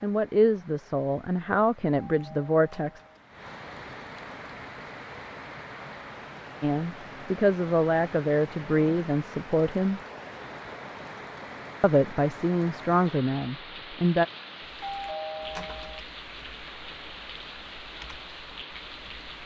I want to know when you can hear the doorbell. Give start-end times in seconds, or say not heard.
2.0-3.2, 14.8-16.0.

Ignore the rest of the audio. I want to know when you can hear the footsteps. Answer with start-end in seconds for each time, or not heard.
not heard.